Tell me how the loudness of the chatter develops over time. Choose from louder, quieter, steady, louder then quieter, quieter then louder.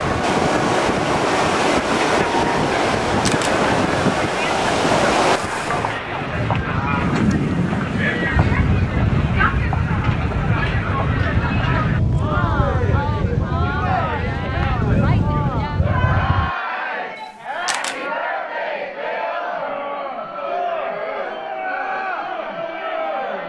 steady.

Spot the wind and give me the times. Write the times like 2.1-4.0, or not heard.
0.0-16.5.